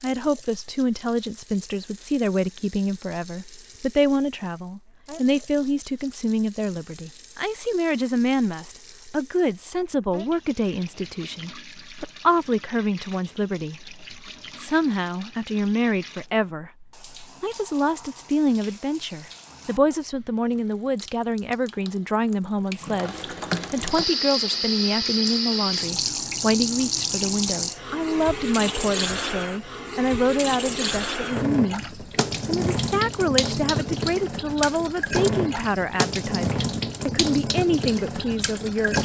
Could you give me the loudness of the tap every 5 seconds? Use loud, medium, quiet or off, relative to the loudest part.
quiet, quiet, quiet, quiet, loud, loud, loud, loud.